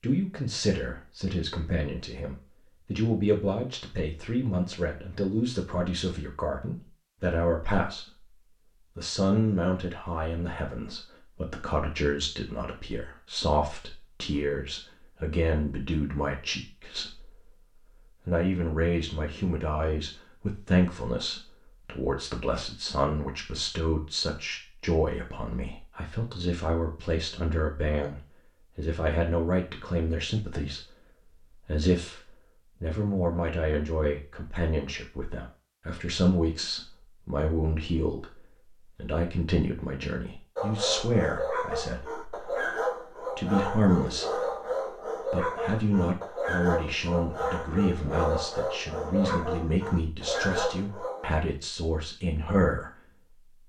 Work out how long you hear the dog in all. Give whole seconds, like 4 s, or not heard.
11 s.